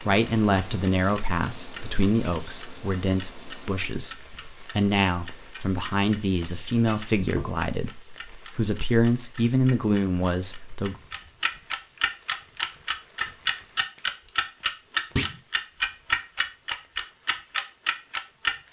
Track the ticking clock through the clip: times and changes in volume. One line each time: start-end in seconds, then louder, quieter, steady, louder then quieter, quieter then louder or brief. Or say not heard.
0.0-18.6 louder.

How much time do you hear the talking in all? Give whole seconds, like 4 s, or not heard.
11 s.